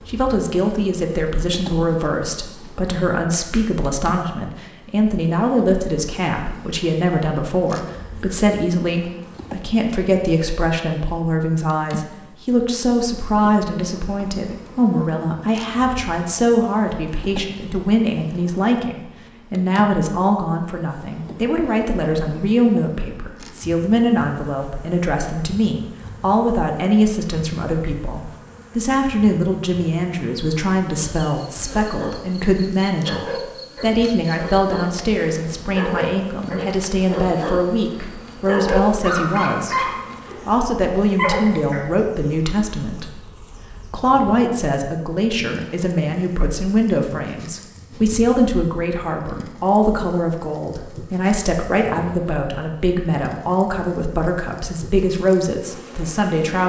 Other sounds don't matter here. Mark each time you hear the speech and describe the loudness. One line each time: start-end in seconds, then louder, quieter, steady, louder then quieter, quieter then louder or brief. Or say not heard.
0.1-56.6 steady.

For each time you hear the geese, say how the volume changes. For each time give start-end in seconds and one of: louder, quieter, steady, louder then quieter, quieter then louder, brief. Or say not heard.
not heard.